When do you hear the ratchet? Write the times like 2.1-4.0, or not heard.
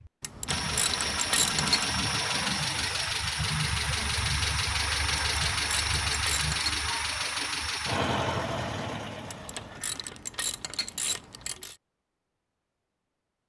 0.2-1.9, 5.2-6.8, 9.3-11.8.